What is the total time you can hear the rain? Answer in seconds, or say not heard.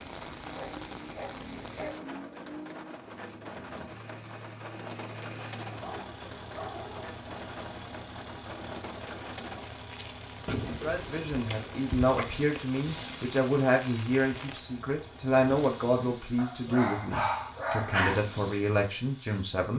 15 s.